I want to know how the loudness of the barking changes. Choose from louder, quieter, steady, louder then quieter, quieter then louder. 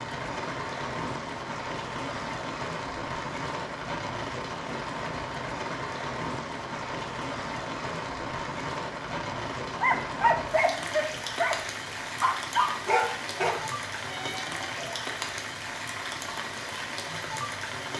quieter.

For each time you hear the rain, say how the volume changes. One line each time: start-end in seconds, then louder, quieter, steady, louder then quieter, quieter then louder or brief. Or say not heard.
0.0-17.9 steady.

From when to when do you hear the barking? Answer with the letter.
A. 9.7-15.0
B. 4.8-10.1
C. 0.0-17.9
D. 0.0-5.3
A.